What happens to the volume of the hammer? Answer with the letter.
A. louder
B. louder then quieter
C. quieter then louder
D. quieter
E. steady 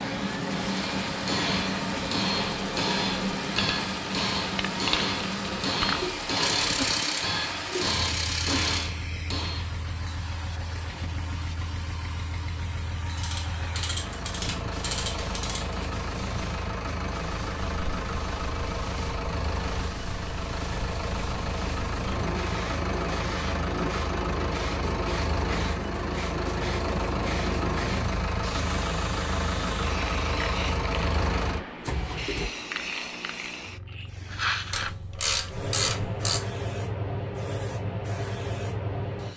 E.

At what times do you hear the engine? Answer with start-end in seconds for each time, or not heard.
0.0-32.5.